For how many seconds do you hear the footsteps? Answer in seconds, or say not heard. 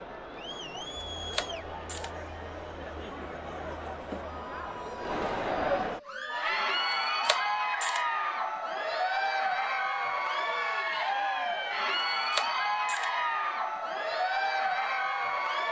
not heard.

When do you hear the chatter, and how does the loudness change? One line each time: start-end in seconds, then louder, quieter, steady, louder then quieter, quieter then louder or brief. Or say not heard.
0.0-15.6 louder.